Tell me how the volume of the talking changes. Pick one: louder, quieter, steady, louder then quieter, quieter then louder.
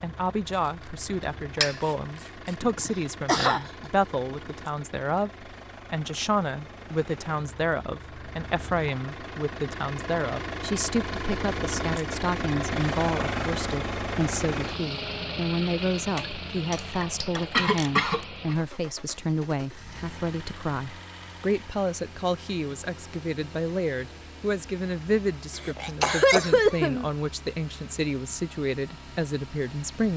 steady.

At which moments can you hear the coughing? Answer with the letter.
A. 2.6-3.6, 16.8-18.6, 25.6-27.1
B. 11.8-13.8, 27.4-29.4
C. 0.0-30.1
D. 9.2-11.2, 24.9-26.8
A.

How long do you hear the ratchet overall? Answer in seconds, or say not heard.
4 s.